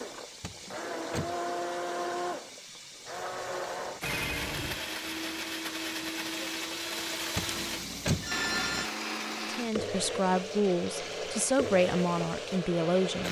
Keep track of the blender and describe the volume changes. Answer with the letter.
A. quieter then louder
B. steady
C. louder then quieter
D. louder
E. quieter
B.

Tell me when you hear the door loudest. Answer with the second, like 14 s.
8 s.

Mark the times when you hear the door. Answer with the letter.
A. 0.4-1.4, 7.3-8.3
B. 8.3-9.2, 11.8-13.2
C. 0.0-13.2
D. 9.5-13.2
A.